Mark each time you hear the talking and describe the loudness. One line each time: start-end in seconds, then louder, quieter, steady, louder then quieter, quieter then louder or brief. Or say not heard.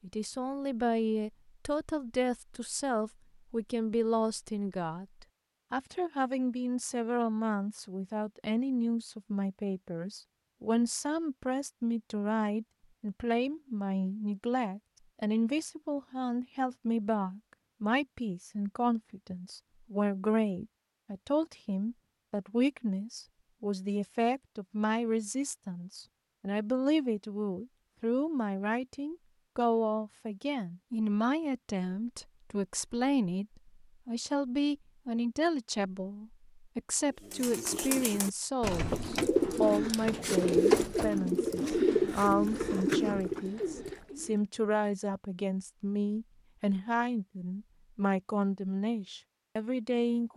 0.0-50.3 steady.